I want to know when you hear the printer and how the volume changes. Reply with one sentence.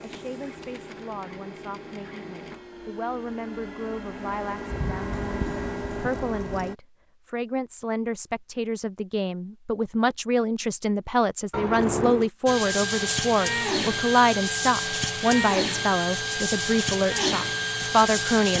The printer can be heard from 0.0 to 6.8 s, getting louder; and from 12.4 to 18.5 s, at a steady volume.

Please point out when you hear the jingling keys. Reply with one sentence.
The jingling keys can be heard from 4.7 to 6.7 s and from 11.5 to 12.3 s.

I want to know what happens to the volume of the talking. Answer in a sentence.
The loudness of the talking goes up.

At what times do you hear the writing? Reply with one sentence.
You can't hear the writing here.